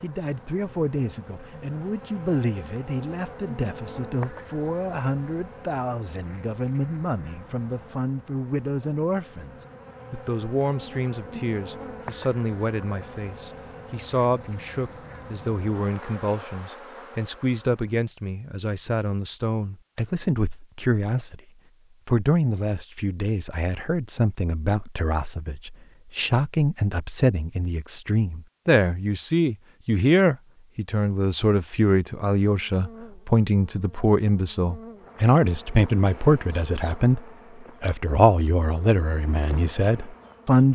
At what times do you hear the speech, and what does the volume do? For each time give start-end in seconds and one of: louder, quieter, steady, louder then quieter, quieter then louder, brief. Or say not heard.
0.0-21.4 steady
22.1-37.2 louder
37.8-40.7 brief.